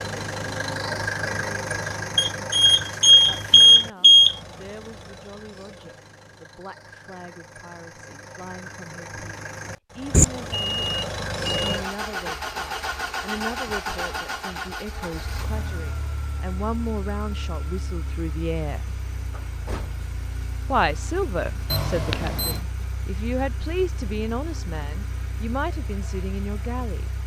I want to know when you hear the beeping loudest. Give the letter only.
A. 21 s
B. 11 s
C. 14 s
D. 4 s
D.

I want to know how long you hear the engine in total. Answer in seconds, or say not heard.
27 s.